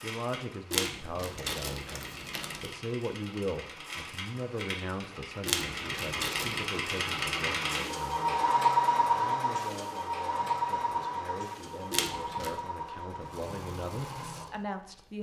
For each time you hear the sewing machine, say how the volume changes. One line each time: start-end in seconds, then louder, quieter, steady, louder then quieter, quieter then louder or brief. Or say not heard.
0.0-15.1 louder then quieter.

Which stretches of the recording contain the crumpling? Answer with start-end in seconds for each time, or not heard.
0.7-2.7, 5.5-6.7, 11.9-12.6.